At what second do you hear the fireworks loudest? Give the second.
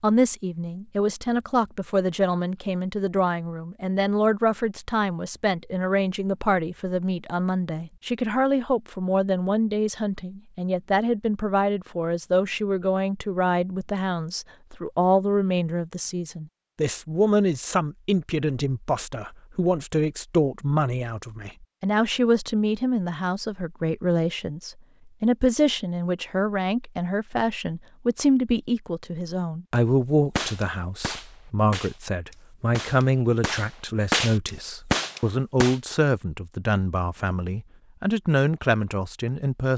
34 s.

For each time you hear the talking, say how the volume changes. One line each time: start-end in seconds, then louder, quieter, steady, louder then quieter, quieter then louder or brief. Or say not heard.
0.0-39.7 steady.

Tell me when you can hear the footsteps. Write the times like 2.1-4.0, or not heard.
not heard.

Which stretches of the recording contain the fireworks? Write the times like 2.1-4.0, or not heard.
30.4-35.8.